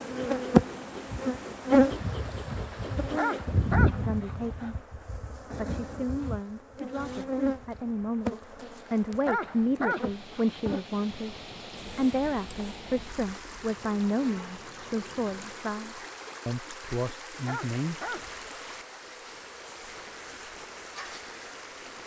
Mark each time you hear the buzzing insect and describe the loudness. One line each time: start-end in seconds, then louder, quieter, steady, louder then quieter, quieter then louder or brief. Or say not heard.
0.0-22.0 quieter.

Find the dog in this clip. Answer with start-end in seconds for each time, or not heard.
3.1-4.7, 9.2-10.6, 17.4-19.0.